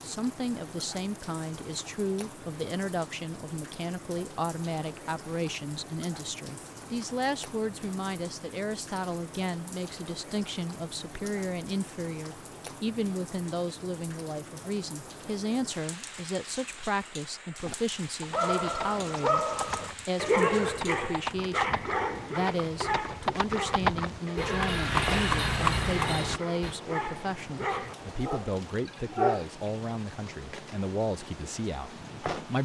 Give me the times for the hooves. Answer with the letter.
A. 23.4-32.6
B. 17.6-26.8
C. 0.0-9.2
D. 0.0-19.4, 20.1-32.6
B.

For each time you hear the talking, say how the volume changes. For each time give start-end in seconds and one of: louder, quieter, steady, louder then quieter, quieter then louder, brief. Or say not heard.
0.0-19.4 steady
20.1-32.6 steady.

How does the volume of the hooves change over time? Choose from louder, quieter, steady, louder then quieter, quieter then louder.
louder.